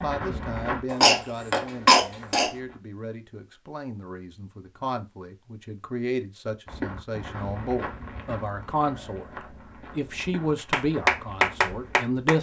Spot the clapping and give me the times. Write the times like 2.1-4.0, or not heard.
10.7-12.3.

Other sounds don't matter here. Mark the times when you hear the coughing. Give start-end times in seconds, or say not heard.
0.9-2.5.